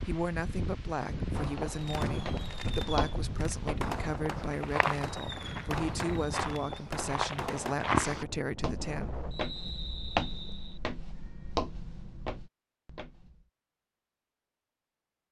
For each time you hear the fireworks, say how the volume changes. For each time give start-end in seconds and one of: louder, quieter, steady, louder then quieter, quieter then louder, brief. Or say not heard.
1.3-7.8 steady.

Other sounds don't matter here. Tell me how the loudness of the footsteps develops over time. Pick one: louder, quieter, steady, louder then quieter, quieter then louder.
louder then quieter.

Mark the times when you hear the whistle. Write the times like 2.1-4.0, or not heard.
9.3-10.8.